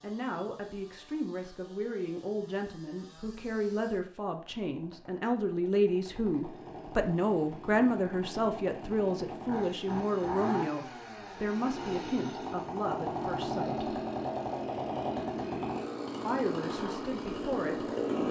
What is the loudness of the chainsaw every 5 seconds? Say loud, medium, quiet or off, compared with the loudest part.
quiet, medium, loud, loud.